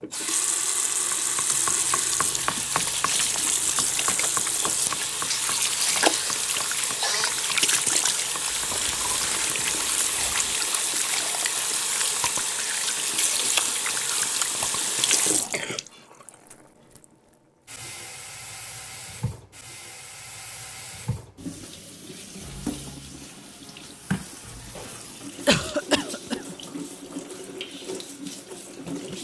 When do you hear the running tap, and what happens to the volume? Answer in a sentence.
You can hear the running tap from 0.0 to 29.1 s, getting quieter.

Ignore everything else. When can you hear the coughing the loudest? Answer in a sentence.
The volume of the coughing peaks at 26 seconds.